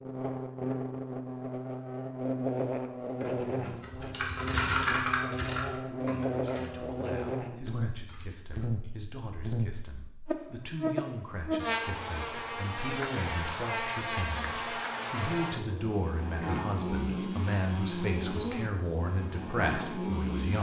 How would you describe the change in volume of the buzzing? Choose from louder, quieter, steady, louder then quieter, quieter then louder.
steady.